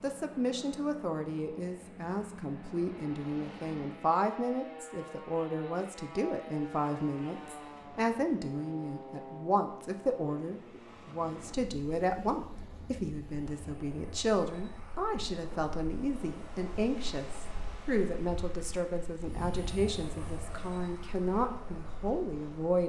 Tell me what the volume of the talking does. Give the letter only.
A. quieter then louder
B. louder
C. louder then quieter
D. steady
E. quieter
D.